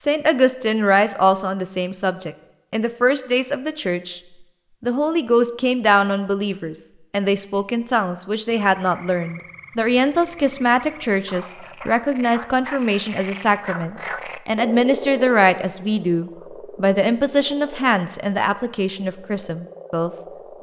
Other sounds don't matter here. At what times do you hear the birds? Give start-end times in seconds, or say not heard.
not heard.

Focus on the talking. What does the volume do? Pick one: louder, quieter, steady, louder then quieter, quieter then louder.
steady.